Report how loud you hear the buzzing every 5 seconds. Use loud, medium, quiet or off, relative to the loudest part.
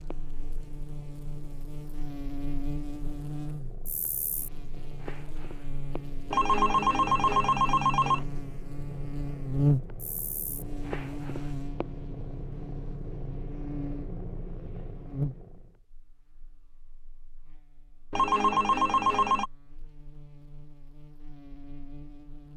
medium, loud, medium, medium, quiet.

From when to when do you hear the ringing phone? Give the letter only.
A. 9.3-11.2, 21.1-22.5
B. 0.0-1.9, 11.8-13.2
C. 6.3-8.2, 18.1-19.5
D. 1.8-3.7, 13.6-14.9
C.